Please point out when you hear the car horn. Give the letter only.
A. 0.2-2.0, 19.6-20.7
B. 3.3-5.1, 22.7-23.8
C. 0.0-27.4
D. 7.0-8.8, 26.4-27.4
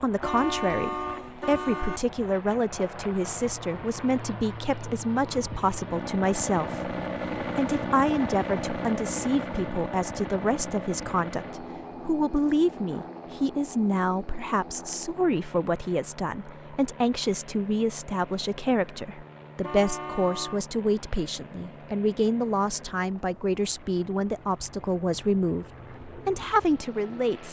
A.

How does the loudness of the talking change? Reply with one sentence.
The volume of the talking stays about the same.